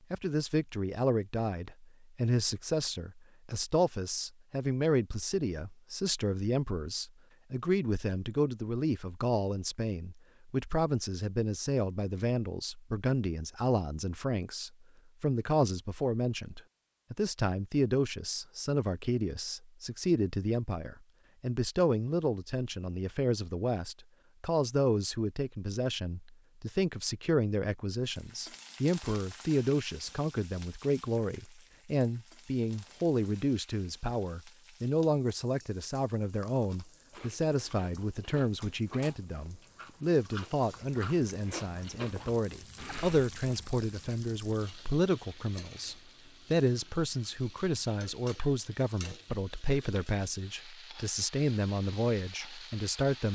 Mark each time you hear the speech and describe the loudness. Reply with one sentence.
You can hear the speech from 0.1 to 53.2 s, at a steady volume.